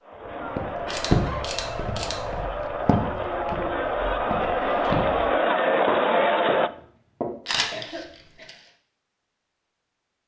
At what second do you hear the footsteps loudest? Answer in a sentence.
The volume of the footsteps peaks at 1 second.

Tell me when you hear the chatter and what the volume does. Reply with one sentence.
The chatter can be heard from 0.0 to 6.7 s, getting louder.